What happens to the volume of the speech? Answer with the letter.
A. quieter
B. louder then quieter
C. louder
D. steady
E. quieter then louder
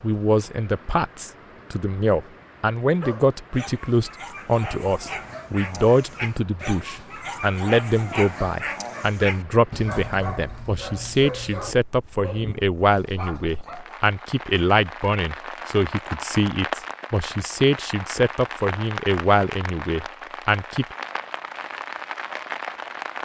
D.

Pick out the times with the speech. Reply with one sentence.
You can hear the speech from 0.0 to 20.9 s.